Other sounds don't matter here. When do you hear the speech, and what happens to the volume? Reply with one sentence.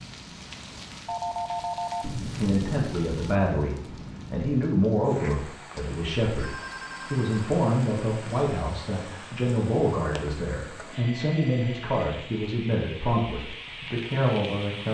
You can hear the speech from 2.2 to 14.8 s, at a steady volume.